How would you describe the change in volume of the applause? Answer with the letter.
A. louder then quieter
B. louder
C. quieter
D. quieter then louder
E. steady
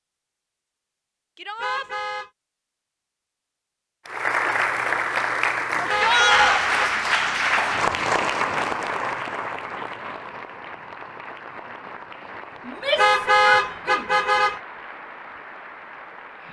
C.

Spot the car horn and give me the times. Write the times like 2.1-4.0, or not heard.
1.6-2.3, 5.8-7.0, 12.9-14.6.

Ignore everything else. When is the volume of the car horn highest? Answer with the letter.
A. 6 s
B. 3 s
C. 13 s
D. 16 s
C.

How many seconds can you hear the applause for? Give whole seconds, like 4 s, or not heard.
12 s.